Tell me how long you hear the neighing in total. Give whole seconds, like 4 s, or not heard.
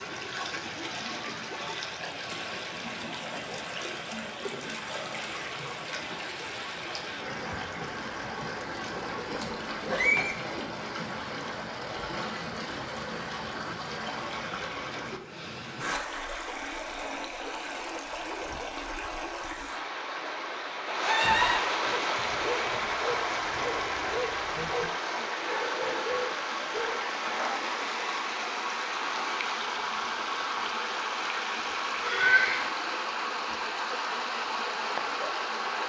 3 s.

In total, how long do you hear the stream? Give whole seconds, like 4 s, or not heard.
36 s.